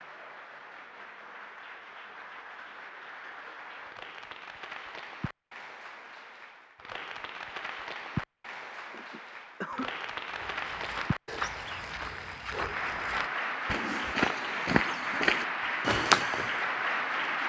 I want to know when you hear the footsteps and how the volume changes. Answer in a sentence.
You can hear the footsteps from 10.3 to 16.6 s, getting louder.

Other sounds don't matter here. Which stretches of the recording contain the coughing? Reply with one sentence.
You can hear the coughing from 8.9 to 9.9 s.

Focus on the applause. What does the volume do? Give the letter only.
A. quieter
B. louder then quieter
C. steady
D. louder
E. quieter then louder
D.